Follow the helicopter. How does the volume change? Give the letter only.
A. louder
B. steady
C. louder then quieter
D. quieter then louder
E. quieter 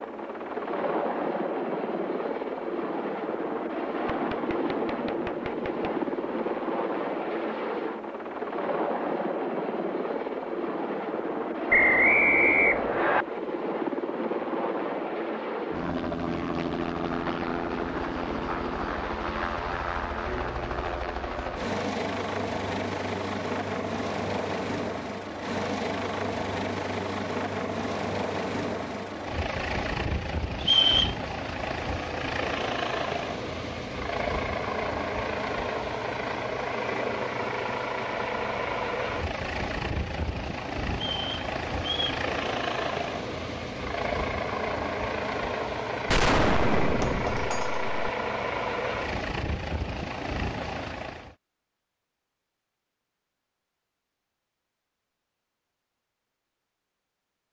B.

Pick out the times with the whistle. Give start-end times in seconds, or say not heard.
11.7-13.2, 30.6-31.1, 41.0-42.2.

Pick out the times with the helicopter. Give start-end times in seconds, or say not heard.
0.0-51.4.